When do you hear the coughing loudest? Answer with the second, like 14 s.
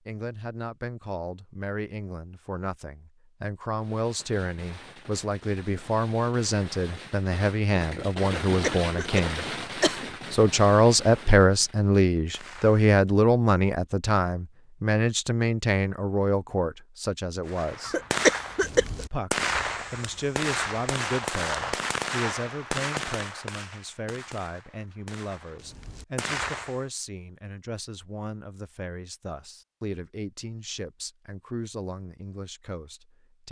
18 s.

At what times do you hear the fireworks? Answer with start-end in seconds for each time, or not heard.
3.7-12.9, 17.4-26.9.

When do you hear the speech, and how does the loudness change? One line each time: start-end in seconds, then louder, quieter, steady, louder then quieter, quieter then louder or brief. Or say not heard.
0.0-9.4 louder
10.3-17.9 quieter
19.1-33.4 quieter.